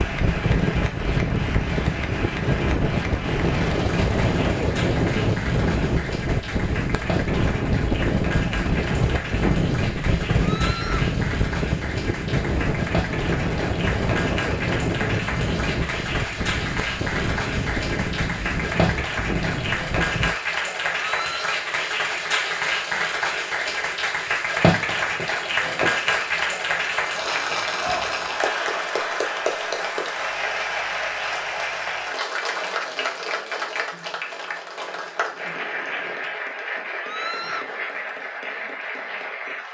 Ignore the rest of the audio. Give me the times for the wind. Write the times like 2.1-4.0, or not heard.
0.0-20.3.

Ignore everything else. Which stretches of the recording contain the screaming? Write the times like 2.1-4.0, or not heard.
10.4-11.1, 21.0-21.6, 37.0-37.7.